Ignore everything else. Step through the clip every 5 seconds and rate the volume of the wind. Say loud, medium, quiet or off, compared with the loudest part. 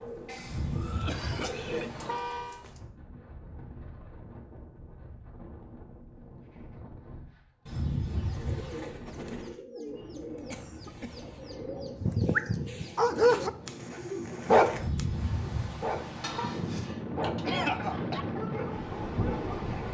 quiet, quiet, medium, loud.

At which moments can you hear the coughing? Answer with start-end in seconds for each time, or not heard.
0.2-1.9, 10.5-11.2, 16.2-18.2.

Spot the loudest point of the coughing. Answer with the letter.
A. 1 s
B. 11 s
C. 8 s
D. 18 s
D.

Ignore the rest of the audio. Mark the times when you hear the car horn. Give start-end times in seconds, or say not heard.
0.4-2.6, 7.7-9.0, 14.7-16.6.